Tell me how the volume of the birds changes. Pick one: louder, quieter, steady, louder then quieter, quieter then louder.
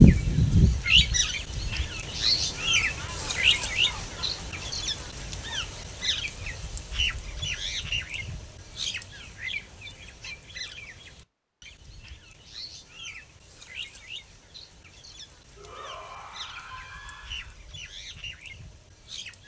quieter.